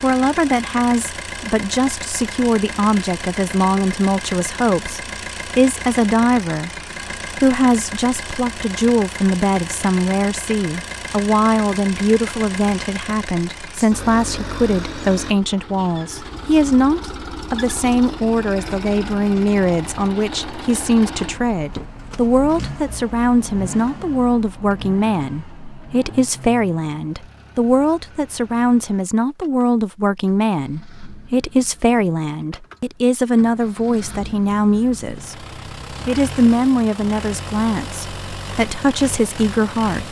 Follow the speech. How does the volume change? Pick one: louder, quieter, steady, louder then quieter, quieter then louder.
steady.